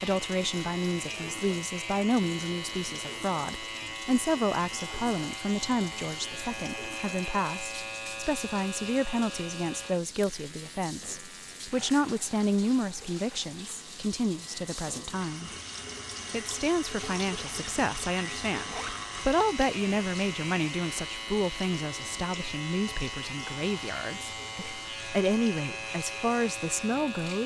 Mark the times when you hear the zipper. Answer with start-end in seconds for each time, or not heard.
18.6-19.0.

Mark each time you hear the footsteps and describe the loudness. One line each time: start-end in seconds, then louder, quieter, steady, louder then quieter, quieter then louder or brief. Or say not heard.
not heard.